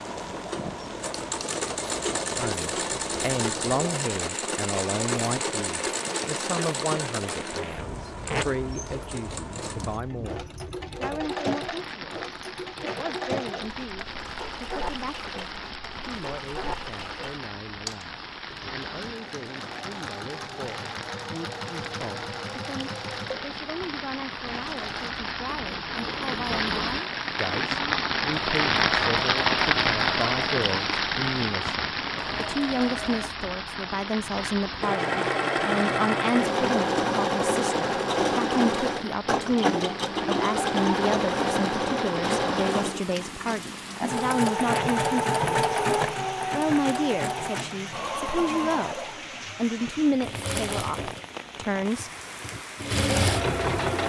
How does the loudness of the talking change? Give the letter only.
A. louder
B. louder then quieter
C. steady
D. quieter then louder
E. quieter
D.